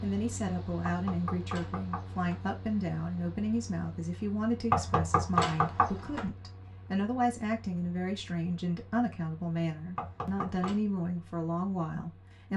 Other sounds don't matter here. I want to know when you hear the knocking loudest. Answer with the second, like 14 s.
5 s.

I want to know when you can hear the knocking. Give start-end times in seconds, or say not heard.
0.8-2.5, 4.7-6.3, 9.9-10.8.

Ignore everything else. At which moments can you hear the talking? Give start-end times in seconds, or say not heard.
0.0-12.5.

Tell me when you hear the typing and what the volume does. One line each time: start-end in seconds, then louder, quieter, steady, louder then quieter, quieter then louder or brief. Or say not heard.
not heard.